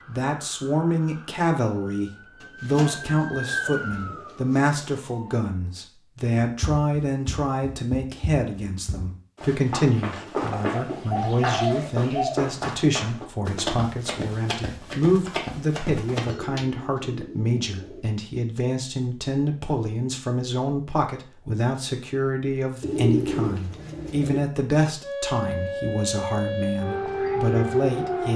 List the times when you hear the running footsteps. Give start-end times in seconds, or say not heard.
6.5-16.4.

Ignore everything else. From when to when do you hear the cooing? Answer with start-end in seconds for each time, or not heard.
2.4-4.8, 10.5-12.4, 16.2-18.1, 22.8-24.4.